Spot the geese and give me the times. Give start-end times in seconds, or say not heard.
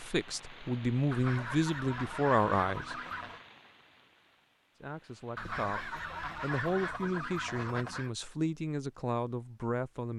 1.1-3.5, 5.3-8.1.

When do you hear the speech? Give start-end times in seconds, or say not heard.
0.0-3.0, 4.8-10.1.